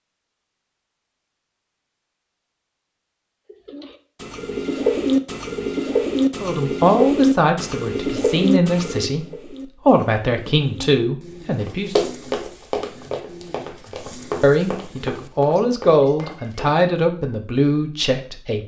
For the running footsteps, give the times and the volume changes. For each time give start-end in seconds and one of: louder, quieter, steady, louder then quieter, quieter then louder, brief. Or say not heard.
11.6-16.8 quieter.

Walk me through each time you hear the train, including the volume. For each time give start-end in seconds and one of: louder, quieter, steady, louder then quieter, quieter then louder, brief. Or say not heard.
not heard.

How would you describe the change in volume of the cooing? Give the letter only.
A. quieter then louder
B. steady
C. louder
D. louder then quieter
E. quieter
E.